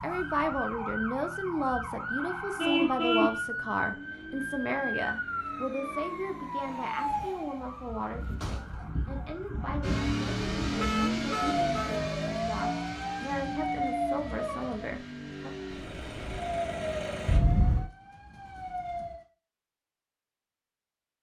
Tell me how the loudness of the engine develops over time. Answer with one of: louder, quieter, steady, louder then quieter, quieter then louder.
quieter.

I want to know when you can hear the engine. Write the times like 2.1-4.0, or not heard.
9.8-17.4.